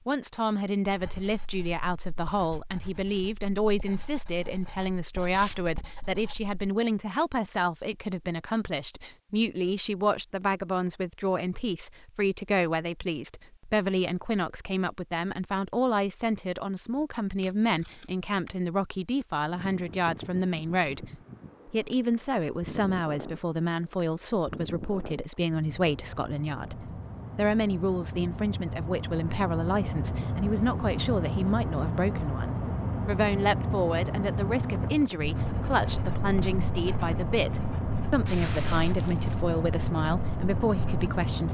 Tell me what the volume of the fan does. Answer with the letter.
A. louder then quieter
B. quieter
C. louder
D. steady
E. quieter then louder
C.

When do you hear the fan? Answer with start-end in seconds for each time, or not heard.
19.5-41.4.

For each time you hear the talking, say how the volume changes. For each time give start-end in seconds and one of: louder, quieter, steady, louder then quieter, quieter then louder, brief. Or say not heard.
0.1-41.4 steady.